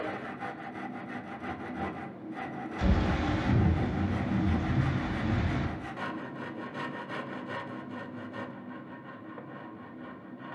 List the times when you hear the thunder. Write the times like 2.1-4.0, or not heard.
2.8-5.7.